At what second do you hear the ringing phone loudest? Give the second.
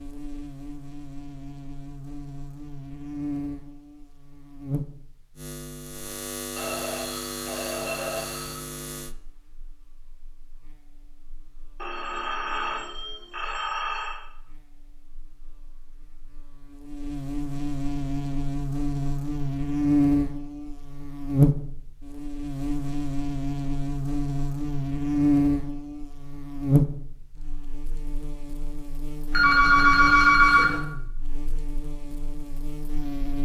30 s.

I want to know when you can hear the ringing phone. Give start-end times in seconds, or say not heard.
6.5-8.6, 11.8-14.2, 29.3-30.8.